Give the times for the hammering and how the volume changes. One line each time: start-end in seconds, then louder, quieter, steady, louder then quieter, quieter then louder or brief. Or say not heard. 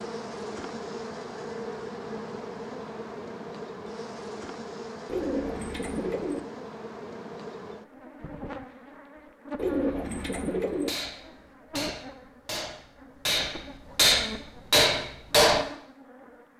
10.8-15.7 louder.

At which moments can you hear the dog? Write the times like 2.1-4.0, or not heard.
not heard.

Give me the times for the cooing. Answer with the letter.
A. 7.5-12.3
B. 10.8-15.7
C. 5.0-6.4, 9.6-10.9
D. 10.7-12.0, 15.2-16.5
C.